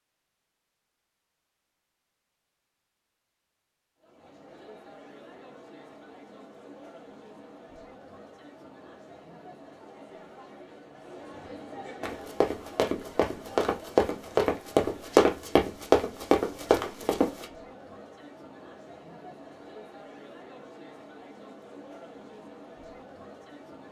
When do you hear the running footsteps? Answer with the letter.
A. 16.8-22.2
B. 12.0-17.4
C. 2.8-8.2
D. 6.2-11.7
B.